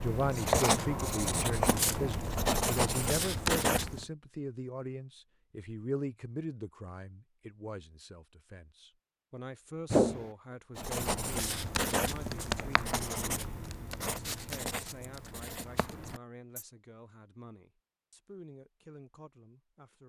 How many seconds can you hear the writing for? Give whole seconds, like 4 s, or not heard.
10 s.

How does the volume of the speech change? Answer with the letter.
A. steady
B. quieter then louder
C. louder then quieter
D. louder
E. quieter
E.